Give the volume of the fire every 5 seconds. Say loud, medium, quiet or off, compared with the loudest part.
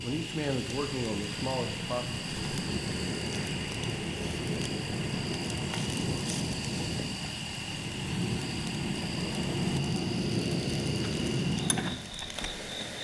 medium, loud, loud.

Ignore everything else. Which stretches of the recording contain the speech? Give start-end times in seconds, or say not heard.
0.0-2.2.